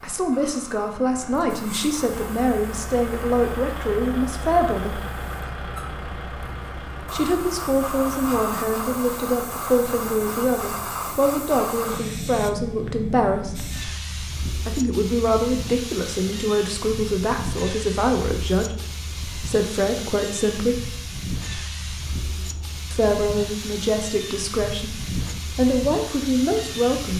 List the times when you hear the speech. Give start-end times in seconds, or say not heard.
0.0-5.0, 7.0-13.8, 14.7-20.9, 22.9-27.1.